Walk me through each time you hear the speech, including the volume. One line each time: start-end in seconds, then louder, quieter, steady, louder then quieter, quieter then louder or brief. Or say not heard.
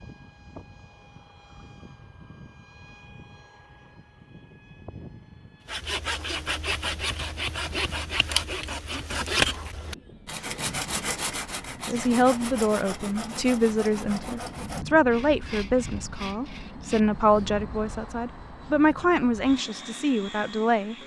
11.8-20.9 steady.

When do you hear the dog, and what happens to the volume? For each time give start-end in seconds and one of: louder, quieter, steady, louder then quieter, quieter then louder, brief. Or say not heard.
not heard.